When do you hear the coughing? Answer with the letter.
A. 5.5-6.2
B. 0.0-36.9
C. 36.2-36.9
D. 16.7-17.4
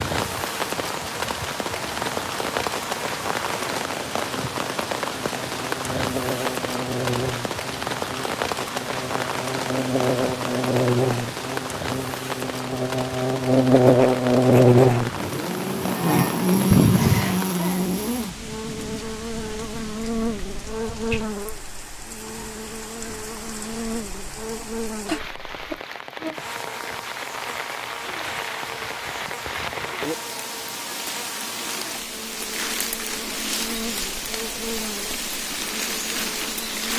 D.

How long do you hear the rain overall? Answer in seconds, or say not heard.
37 s.